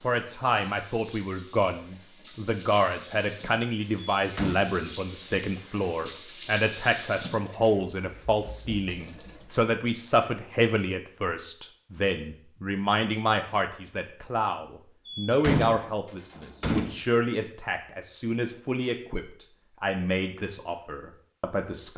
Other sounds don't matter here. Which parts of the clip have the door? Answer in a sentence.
You can hear the door from 4.2 to 4.6 s and from 15.1 to 17.0 s.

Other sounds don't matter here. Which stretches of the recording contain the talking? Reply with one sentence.
The talking can be heard from 0.0 to 21.9 s.